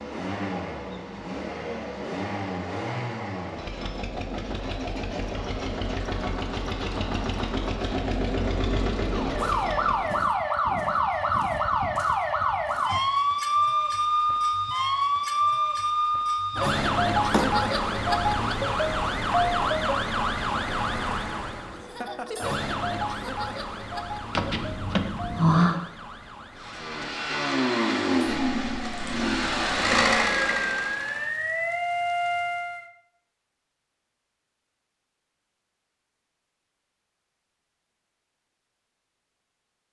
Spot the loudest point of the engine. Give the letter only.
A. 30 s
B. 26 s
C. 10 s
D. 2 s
A.